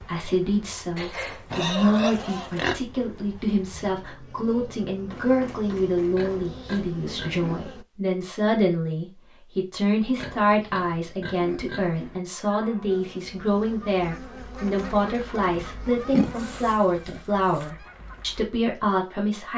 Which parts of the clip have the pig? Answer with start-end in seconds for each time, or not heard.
0.9-2.8, 6.2-7.8, 10.2-12.2, 15.9-17.7.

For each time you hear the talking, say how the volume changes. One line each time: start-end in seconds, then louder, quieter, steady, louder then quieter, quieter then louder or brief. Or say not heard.
0.0-19.5 steady.